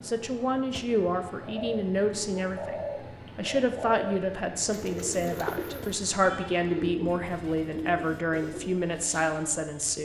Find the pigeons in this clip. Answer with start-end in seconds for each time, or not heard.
1.4-8.8.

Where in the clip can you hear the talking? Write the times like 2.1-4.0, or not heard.
0.0-9.9.